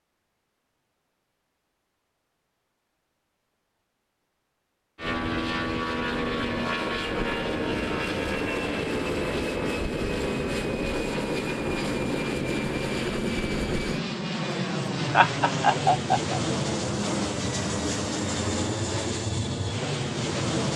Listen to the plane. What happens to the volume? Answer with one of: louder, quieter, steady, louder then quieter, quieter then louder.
steady.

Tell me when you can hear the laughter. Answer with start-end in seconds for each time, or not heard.
15.1-16.4.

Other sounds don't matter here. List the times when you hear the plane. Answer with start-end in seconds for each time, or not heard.
5.0-20.7.